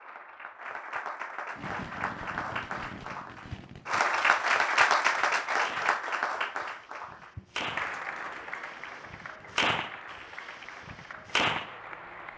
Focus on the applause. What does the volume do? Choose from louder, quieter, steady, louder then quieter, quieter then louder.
louder then quieter.